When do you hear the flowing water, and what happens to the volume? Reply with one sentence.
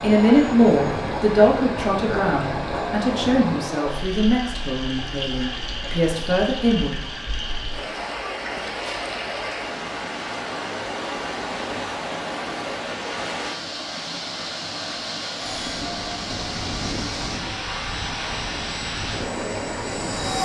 The flowing water can be heard from 0.0 to 20.4 s, at a steady volume.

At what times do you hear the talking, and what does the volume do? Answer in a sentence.
The talking can be heard from 0.0 to 7.0 s, getting quieter.